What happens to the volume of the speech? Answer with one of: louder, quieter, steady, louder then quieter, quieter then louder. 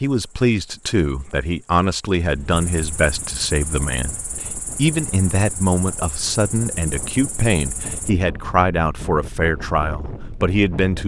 steady.